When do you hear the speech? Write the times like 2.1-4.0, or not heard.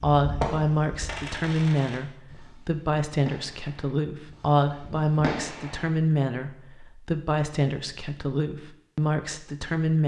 0.0-10.0.